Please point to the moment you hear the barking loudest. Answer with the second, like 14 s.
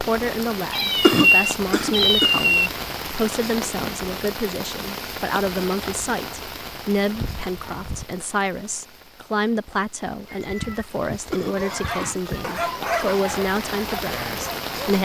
13 s.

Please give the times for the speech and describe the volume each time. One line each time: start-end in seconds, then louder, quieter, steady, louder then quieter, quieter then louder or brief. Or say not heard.
0.0-15.0 steady.